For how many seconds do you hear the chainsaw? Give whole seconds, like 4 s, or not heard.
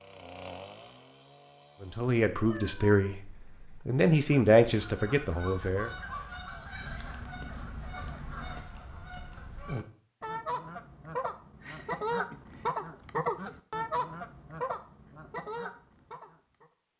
2 s.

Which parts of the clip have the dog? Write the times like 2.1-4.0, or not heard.
not heard.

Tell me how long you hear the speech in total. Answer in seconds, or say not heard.
4 s.